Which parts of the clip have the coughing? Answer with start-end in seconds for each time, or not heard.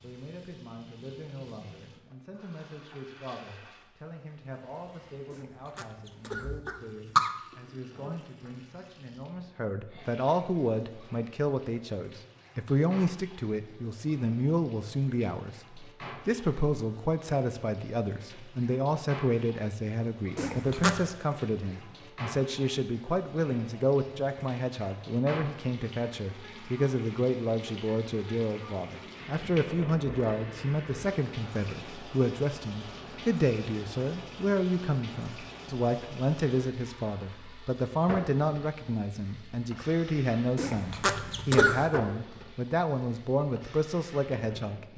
5.3-7.3, 20.4-21.0, 40.5-42.0.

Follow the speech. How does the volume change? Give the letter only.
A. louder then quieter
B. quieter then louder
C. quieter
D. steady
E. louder
E.